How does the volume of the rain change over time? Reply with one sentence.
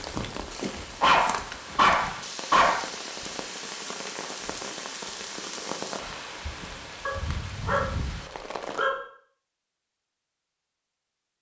The loudness of the rain stays about the same.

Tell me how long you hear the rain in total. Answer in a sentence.
The rain can be heard for 9 seconds in total.